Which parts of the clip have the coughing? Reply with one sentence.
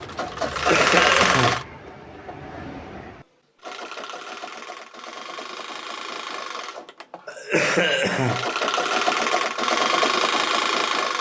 You can hear the coughing from 0.5 to 1.6 s and from 7.2 to 8.4 s.